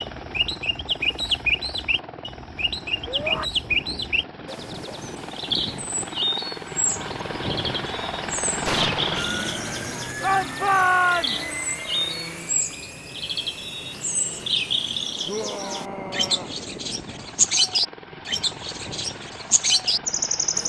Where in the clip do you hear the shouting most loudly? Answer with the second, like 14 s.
11 s.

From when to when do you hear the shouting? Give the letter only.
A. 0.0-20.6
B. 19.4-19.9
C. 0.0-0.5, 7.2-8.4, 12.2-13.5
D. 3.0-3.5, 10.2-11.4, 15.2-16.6
D.